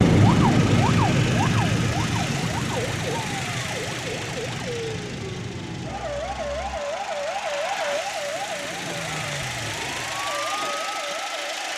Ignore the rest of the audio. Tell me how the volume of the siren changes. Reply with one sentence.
The volume of the siren goes down.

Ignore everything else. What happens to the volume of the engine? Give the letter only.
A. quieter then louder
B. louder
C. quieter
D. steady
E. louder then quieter
A.